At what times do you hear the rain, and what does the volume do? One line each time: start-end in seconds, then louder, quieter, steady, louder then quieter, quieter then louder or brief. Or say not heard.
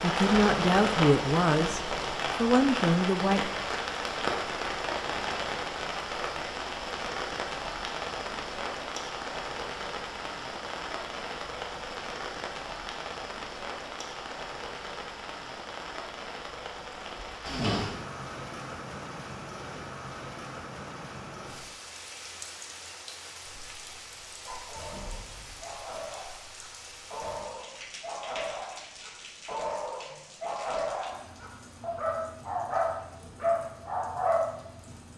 0.0-35.1 quieter.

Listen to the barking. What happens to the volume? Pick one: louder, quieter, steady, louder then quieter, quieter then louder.
louder.